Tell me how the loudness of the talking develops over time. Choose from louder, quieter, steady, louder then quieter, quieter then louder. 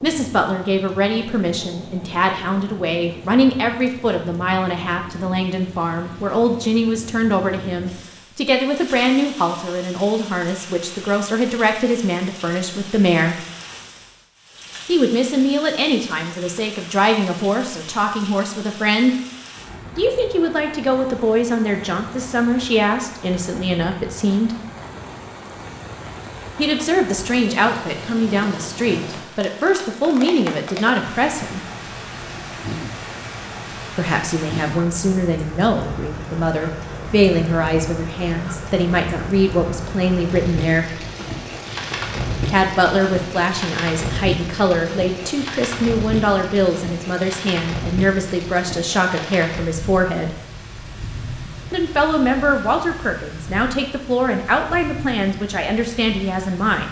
steady.